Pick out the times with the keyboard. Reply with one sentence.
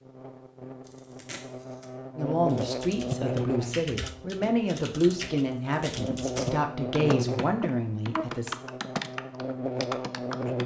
You can hear the keyboard from 2.5 to 10.6 s.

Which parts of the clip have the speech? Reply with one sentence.
You can hear the speech from 2.1 to 8.6 s.